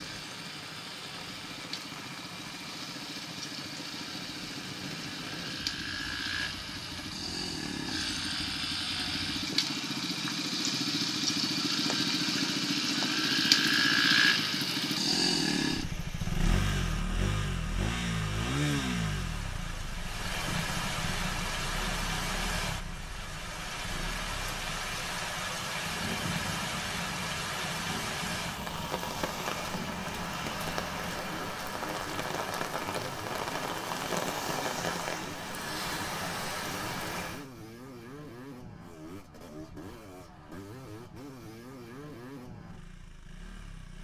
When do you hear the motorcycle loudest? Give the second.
14 s.